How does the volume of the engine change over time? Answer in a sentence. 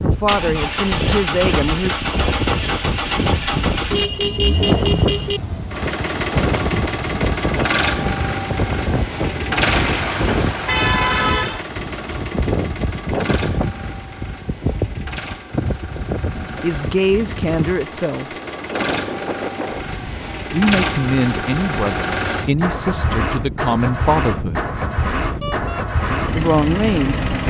The loudness of the engine goes down, then up.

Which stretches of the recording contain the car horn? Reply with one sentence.
The car horn can be heard from 3.9 to 5.4 s, from 9.6 to 11.7 s and from 25.4 to 25.9 s.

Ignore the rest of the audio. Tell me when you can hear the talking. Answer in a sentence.
The talking can be heard from 0.0 to 1.9 s, from 16.6 to 18.3 s, from 20.5 to 24.6 s and from 26.2 to 27.1 s.